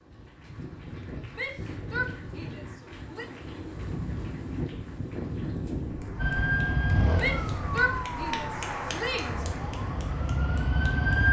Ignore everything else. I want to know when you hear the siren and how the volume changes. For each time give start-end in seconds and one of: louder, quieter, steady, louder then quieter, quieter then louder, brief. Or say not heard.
6.2-11.2 quieter then louder.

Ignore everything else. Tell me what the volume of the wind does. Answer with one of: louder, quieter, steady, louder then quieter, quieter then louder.
louder then quieter.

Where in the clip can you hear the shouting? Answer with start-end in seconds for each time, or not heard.
1.3-3.2, 7.2-9.4.